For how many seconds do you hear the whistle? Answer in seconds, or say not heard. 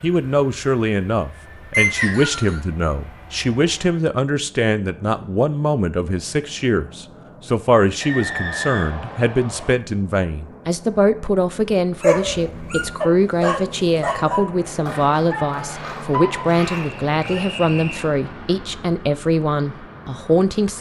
4 s.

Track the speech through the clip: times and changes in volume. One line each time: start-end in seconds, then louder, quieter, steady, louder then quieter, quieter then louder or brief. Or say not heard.
0.0-20.7 steady.